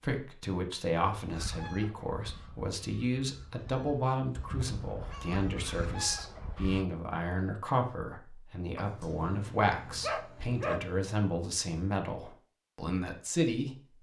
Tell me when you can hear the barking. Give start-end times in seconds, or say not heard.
8.8-11.0.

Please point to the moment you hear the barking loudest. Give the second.
11 s.